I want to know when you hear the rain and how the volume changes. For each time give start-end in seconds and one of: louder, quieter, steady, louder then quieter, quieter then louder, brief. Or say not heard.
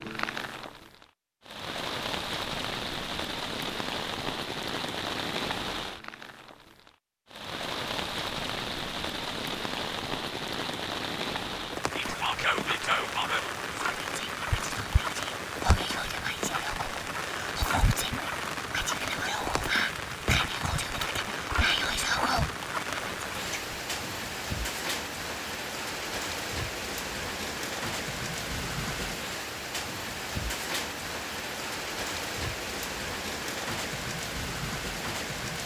0.0-35.6 steady.